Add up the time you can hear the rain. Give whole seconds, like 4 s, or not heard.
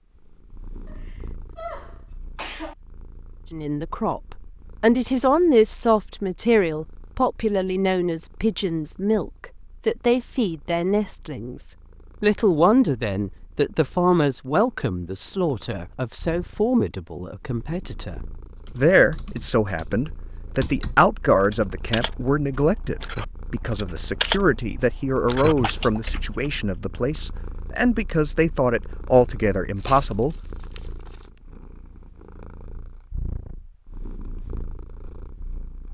not heard.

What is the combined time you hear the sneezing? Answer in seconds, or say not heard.
2 s.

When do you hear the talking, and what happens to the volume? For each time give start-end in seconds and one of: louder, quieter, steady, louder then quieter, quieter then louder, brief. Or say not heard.
3.5-30.4 steady.